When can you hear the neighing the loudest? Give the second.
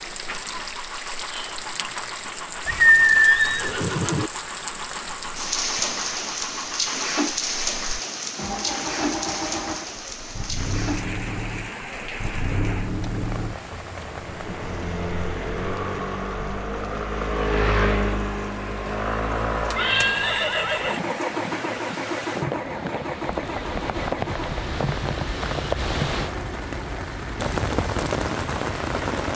3 s.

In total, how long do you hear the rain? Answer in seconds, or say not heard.
29 s.